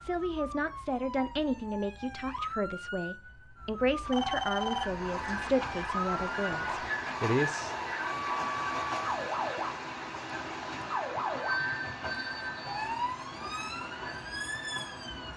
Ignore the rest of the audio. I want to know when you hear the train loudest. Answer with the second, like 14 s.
7 s.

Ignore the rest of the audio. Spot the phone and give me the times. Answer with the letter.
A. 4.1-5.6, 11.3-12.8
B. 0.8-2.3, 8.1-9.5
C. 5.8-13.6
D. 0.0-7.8
A.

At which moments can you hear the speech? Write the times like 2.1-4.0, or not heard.
0.0-7.8.